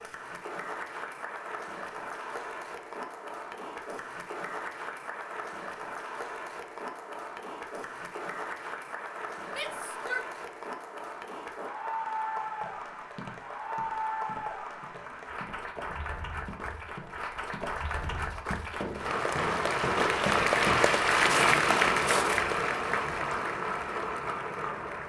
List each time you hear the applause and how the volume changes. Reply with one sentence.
The applause can be heard from 0.0 to 25.0 s, getting louder.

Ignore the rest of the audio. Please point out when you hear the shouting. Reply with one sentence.
The shouting can be heard from 9.4 to 10.2 s.